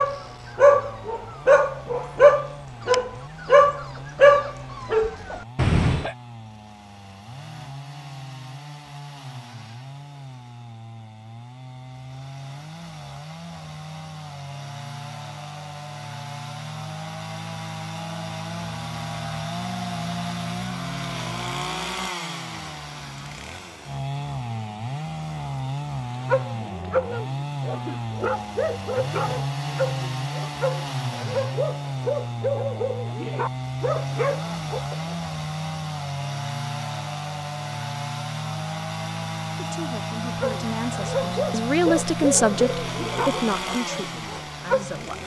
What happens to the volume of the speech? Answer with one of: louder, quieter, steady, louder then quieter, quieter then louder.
louder then quieter.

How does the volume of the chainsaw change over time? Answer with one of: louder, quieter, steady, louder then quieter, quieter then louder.
louder.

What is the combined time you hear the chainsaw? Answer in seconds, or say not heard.
45 s.